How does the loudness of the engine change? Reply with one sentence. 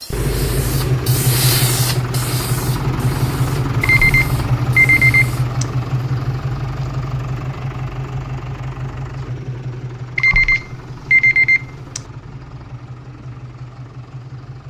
The volume of the engine goes down.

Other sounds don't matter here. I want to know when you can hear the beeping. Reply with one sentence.
You can hear the beeping from 3.8 to 5.7 s and from 10.2 to 12.0 s.